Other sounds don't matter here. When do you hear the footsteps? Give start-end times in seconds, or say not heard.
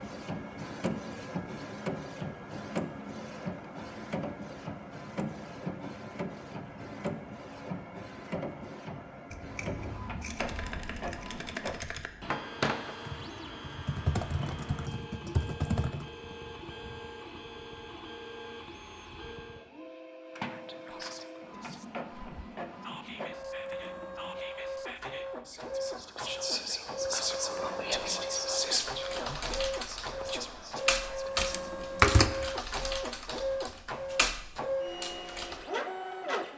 not heard.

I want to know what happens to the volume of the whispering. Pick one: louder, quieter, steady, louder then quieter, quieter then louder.
louder then quieter.